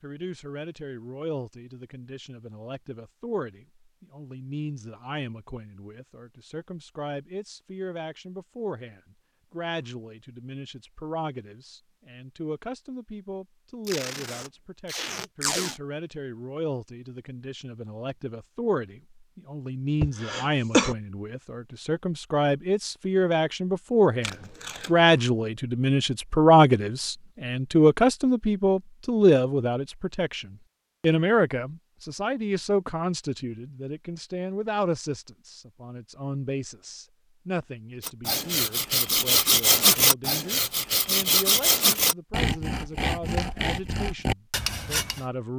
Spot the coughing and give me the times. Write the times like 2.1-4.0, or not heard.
20.0-20.9.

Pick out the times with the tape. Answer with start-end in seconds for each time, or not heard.
13.8-15.8, 24.2-25.1.